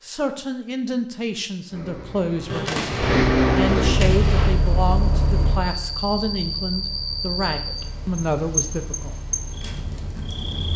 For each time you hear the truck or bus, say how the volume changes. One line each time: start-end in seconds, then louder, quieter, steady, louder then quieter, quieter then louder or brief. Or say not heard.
1.7-10.6 quieter.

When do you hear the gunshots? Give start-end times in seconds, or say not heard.
2.5-4.5.